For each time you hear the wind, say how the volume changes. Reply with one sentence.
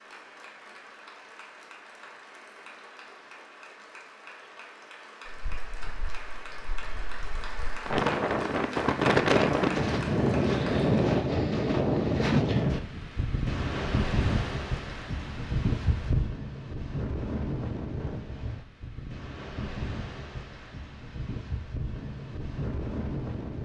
The wind can be heard from 5.2 to 23.6 s, getting louder then quieter.